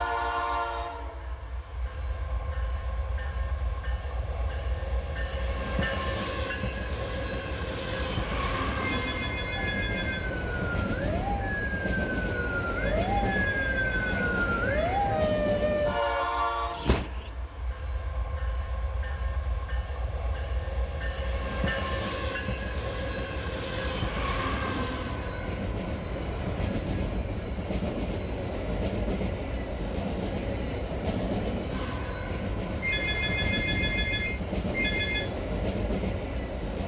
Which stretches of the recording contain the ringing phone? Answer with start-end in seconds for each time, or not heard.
8.8-10.3, 12.8-15.0, 32.8-35.3.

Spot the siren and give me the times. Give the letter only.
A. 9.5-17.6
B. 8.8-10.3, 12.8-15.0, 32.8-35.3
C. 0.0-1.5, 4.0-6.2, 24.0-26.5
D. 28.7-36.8
A.